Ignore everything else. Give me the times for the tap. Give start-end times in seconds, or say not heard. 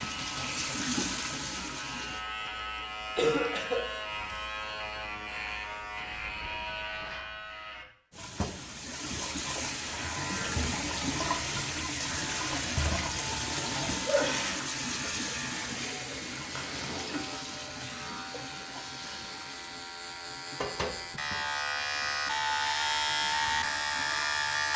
0.0-2.2, 8.1-24.7.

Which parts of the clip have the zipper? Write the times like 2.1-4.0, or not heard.
not heard.